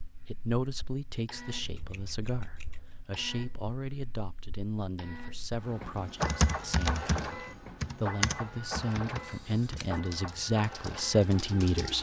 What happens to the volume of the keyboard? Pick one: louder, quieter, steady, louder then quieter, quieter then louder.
quieter.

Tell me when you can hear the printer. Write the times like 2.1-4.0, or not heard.
0.0-11.9.